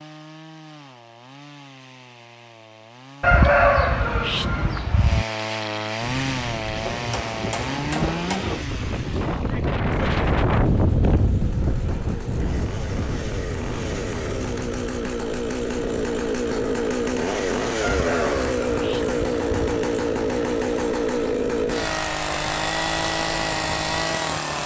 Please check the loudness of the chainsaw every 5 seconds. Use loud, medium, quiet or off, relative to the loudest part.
quiet, medium, medium, loud, loud.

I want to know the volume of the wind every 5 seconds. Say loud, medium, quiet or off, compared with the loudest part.
off, loud, loud, quiet, quiet.